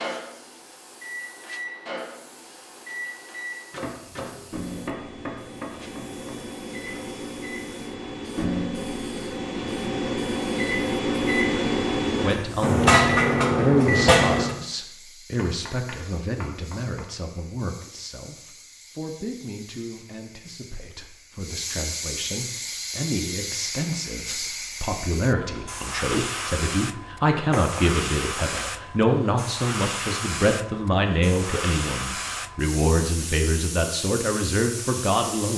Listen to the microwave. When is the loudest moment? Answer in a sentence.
The volume of the microwave peaks at 13 seconds.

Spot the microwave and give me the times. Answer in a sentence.
The microwave can be heard from 0.0 to 14.6 s.